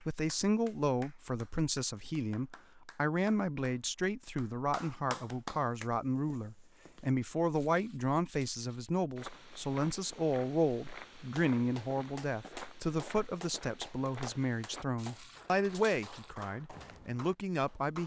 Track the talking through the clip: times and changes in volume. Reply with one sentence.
The talking can be heard from 0.0 to 18.0 s, at a steady volume.